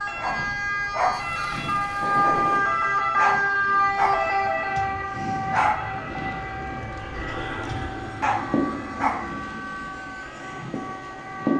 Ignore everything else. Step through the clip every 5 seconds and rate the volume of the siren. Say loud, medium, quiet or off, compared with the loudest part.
loud, medium, medium.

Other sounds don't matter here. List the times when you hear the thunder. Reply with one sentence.
The thunder can be heard from 1.1 to 2.6 s.